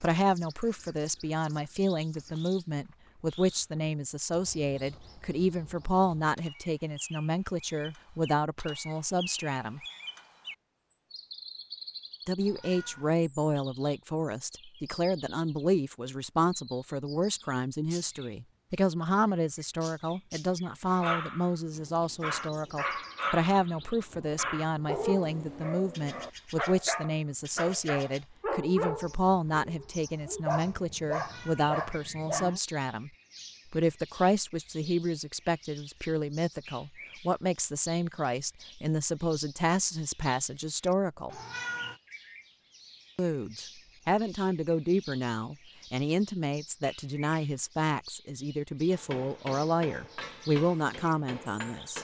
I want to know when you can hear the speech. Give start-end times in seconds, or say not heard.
0.0-9.8, 12.2-33.1, 33.7-41.3, 43.1-52.0.